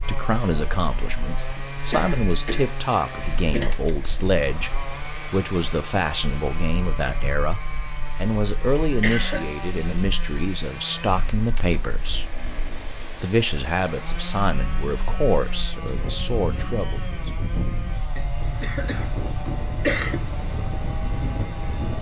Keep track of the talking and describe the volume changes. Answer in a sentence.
The volume of the talking stays about the same.